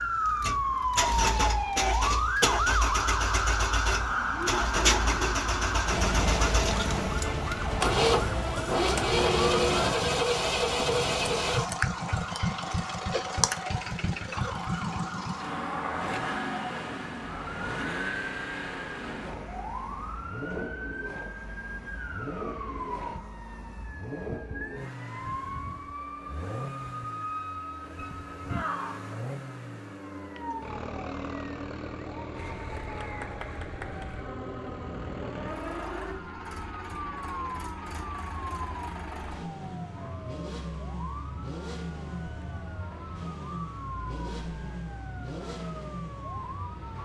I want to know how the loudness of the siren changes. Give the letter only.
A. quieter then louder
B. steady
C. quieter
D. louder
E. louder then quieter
C.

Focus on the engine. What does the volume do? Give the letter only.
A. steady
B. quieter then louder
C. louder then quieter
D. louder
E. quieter
E.